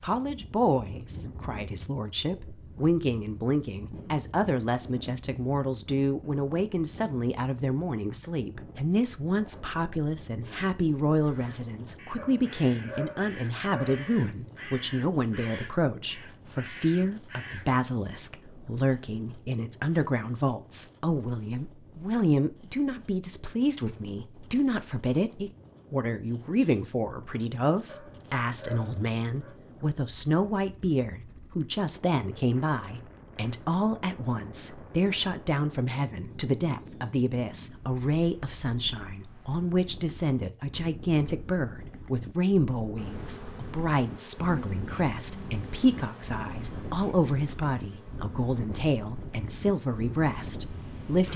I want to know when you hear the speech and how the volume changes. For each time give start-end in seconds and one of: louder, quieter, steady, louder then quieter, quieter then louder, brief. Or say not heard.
0.0-51.3 steady.